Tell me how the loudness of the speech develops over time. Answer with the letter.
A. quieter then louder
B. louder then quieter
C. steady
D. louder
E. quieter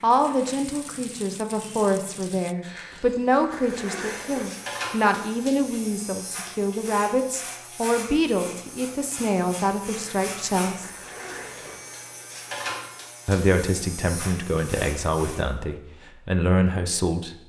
C.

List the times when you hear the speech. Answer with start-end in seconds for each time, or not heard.
0.0-10.9, 13.2-17.4.